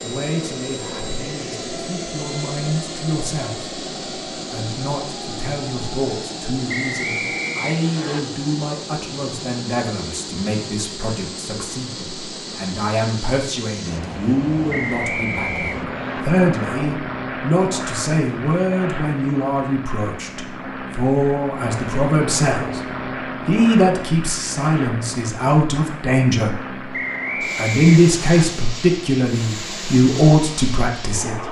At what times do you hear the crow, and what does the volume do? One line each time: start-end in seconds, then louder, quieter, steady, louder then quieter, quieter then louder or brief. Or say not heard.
not heard.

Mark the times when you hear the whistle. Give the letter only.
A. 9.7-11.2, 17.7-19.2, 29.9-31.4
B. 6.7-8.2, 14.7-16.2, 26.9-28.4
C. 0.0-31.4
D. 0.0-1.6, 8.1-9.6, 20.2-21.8
B.